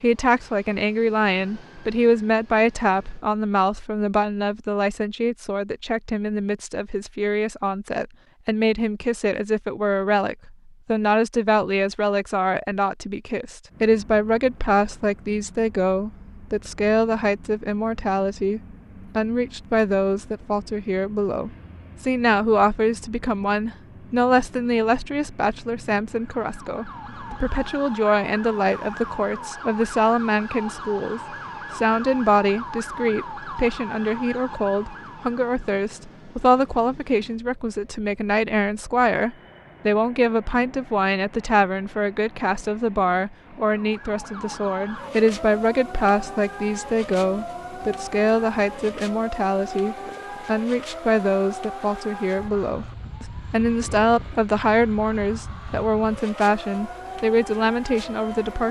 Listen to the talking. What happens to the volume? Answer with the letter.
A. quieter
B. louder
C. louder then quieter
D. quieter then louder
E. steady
E.